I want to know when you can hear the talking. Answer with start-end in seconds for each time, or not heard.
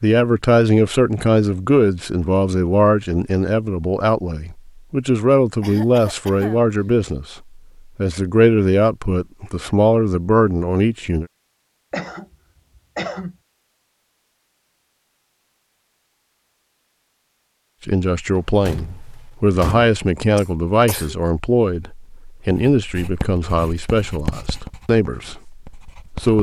0.0-11.2, 17.9-26.3.